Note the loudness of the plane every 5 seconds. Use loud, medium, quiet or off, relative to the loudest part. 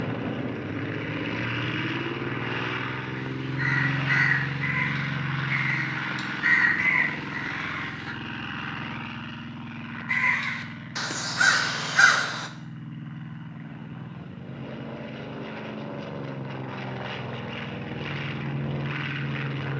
loud, loud, medium, loud.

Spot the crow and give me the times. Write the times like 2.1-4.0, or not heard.
3.1-8.2, 10.1-12.5.